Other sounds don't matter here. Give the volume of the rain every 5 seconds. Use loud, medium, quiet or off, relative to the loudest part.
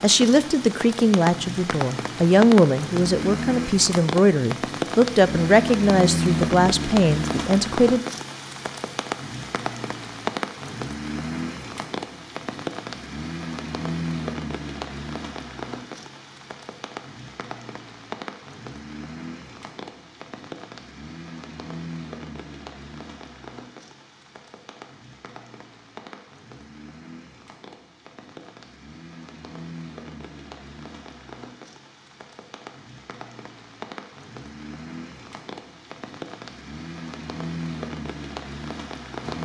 loud, loud, loud, medium, quiet, quiet, quiet, medium.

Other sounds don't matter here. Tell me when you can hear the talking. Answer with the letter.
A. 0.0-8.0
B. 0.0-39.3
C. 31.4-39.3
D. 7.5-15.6
A.